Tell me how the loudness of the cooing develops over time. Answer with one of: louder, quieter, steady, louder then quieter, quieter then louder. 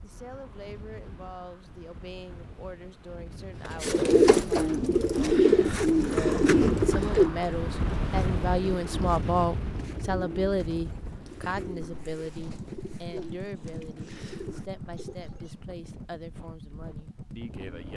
quieter.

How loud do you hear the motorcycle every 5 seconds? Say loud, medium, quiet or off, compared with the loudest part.
off, off, loud, loud.